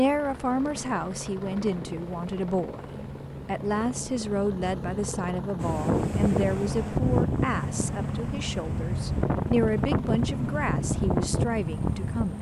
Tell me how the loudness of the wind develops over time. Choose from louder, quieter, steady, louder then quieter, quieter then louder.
steady.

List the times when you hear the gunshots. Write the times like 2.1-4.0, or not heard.
not heard.